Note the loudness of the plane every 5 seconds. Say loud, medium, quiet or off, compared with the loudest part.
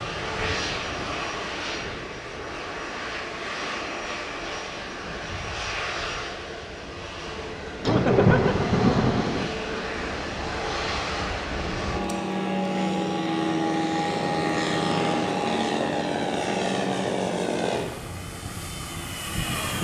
medium, medium, loud, loud.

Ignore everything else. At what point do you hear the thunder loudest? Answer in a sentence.
The volume of the thunder peaks at 8 seconds.